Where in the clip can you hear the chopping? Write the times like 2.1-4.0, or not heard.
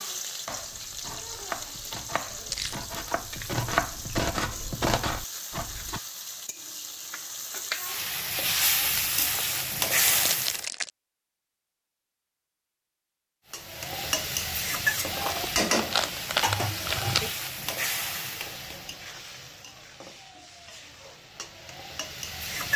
0.5-6.0.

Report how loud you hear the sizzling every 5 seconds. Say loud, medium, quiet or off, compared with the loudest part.
medium, loud, loud, loud, medium.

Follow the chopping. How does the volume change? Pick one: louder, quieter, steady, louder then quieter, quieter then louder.
louder.